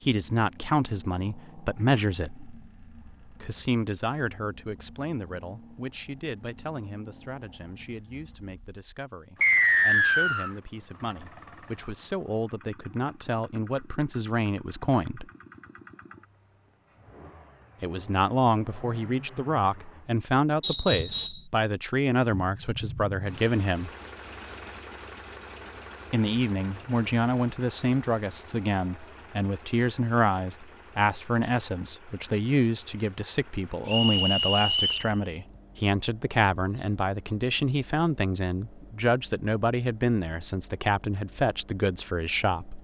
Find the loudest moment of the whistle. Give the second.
10 s.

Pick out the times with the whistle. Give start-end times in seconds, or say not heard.
9.4-10.5, 20.6-21.4, 33.9-35.1.